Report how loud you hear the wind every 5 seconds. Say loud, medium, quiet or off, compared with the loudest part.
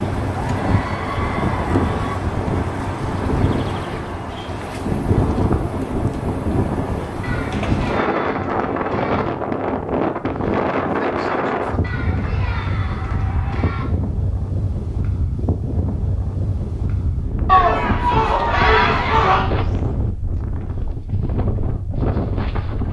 loud, loud, loud, medium, medium.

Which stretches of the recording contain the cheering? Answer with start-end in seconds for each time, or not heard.
0.3-2.1, 7.2-9.2, 11.8-13.8, 17.4-19.4.